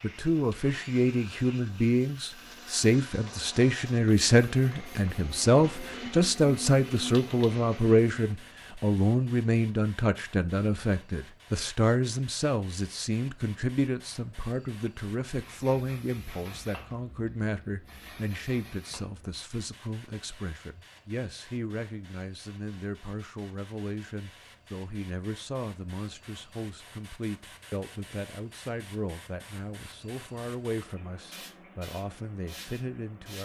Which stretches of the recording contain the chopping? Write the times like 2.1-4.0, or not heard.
not heard.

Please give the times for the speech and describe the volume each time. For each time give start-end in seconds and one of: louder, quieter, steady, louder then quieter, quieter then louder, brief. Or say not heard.
0.0-33.4 quieter.